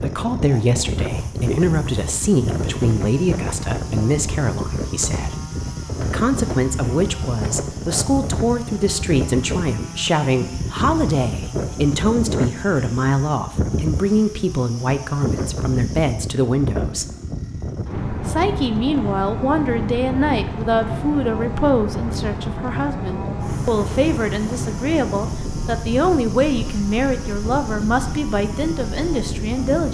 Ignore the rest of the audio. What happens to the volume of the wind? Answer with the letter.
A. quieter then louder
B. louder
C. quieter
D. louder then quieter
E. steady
E.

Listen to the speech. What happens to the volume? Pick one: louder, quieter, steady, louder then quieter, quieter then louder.
steady.